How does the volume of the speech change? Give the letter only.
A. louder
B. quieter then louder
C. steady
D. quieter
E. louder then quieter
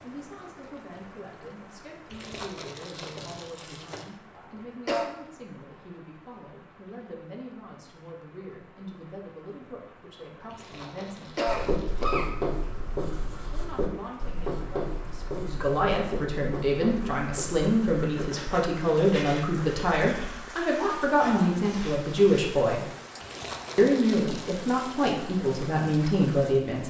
A.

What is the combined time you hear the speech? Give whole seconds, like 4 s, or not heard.
24 s.